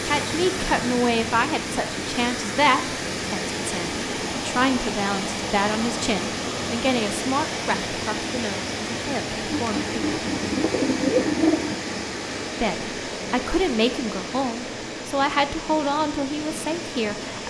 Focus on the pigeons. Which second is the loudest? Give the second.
11 s.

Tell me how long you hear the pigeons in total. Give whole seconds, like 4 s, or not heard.
2 s.